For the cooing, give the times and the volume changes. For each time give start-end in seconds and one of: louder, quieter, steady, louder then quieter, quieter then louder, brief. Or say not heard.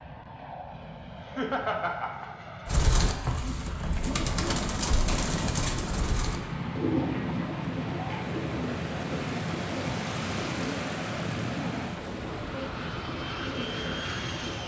2.6-14.6 quieter.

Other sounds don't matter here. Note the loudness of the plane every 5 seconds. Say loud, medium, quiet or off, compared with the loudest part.
medium, loud, loud.